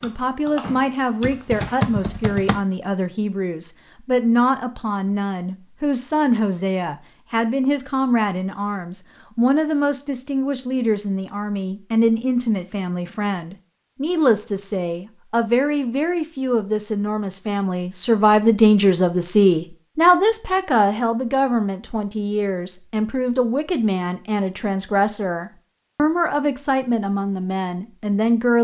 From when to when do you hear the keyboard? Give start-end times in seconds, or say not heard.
0.0-2.6.